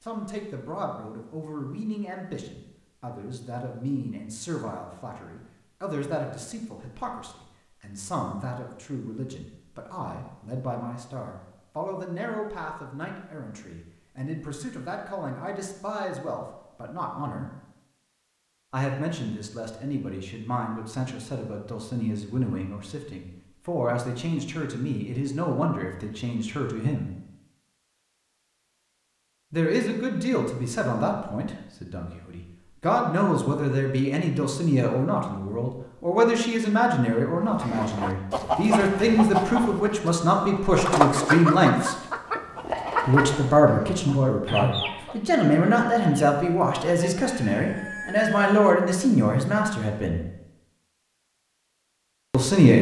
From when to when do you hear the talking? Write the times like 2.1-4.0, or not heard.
0.0-17.5, 18.7-27.1, 29.5-42.0, 43.0-50.2, 52.3-52.7.